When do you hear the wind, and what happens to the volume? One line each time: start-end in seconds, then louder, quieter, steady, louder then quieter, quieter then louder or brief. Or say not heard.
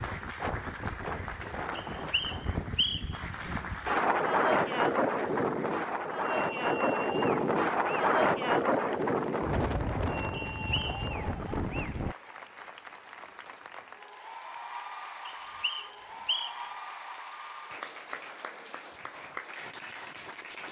0.0-12.2 louder then quieter.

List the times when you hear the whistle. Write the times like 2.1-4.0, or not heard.
1.8-3.2, 10.5-11.1, 15.2-16.7.